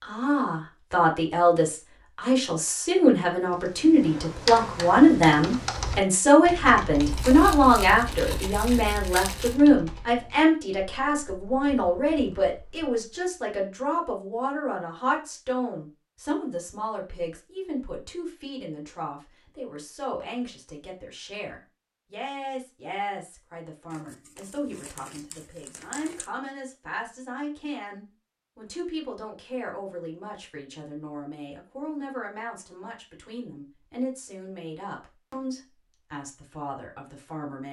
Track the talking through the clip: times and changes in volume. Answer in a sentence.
The talking can be heard from 0.0 to 37.6 s, getting quieter.